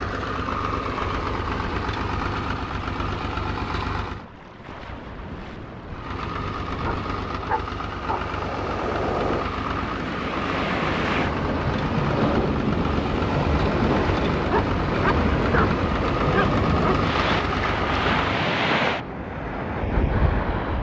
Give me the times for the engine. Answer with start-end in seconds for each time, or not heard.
0.0-4.2, 5.8-18.4.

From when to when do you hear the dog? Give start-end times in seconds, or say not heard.
6.8-8.3, 14.4-16.9.